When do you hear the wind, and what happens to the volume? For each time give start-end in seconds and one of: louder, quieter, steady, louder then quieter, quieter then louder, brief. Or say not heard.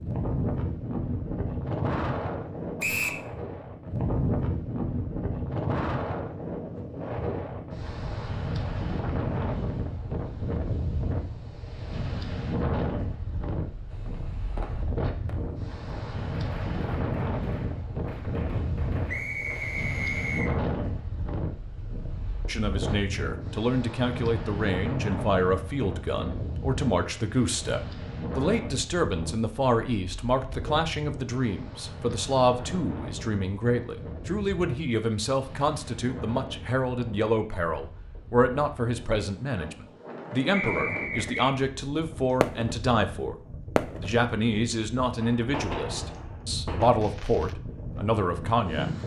0.0-49.0 quieter.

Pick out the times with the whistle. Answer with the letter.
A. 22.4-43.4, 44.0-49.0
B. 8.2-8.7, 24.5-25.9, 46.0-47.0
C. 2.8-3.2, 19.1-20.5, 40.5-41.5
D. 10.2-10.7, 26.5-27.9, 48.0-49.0
C.